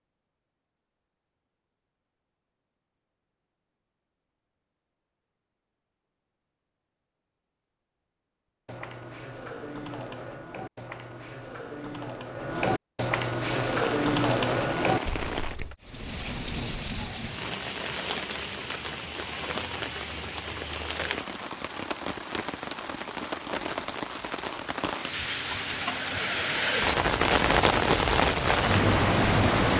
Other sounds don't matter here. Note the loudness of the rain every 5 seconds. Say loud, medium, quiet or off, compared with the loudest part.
off, off, medium, medium, medium, loud.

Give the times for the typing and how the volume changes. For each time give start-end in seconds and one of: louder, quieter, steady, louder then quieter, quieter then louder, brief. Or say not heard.
8.7-15.8 louder.